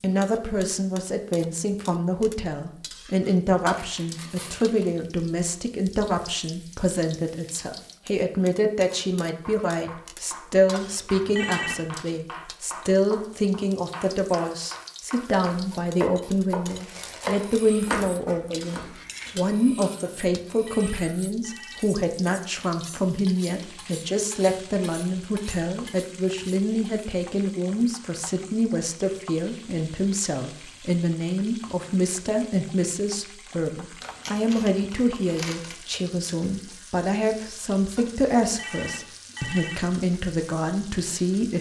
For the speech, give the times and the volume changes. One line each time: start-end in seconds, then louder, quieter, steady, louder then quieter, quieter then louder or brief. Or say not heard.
0.0-41.5 steady.